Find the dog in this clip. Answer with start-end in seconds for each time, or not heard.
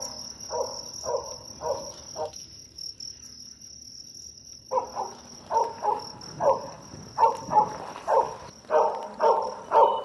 0.0-2.3, 4.7-10.0.